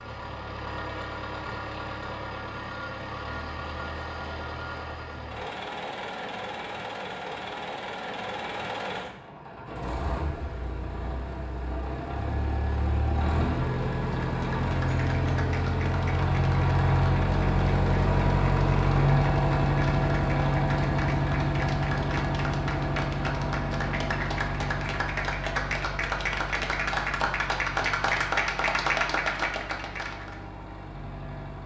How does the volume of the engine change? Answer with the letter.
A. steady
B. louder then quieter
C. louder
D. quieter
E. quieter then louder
B.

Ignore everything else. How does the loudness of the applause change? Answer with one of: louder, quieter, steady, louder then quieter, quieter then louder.
louder.